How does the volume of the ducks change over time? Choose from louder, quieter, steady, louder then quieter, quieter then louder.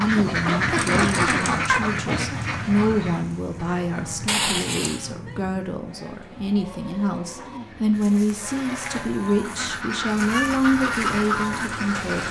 quieter then louder.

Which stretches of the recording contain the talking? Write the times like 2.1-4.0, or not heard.
0.0-12.2.